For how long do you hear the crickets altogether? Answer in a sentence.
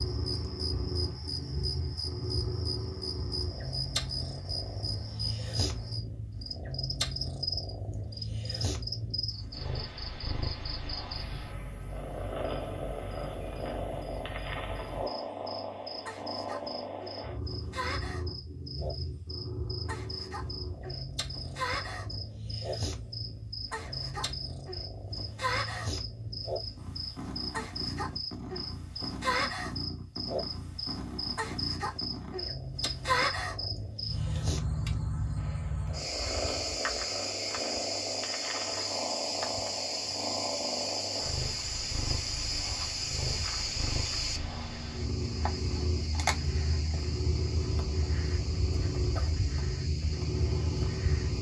You can hear the crickets for 51 seconds altogether.